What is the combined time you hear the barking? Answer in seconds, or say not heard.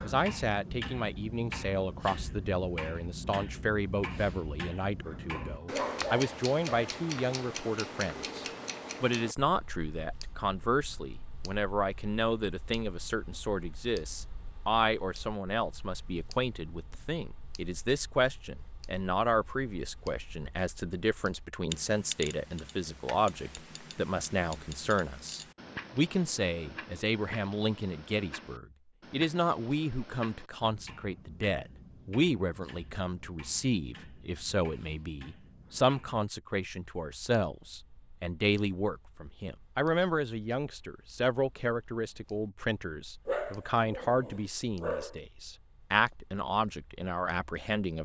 4 s.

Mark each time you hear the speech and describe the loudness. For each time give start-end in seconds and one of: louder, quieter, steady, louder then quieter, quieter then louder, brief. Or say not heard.
0.0-48.0 steady.